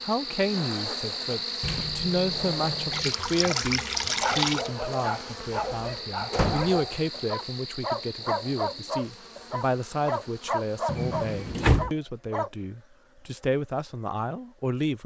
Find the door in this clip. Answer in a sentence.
You can hear the door from 1.6 to 3.1 s, from 6.3 to 6.8 s and from 10.8 to 11.9 s.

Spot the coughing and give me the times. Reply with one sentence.
You can't hear the coughing here.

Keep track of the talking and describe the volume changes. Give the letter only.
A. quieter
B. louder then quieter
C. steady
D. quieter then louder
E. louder
C.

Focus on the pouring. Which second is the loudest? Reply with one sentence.
The volume of the pouring peaks at 4 seconds.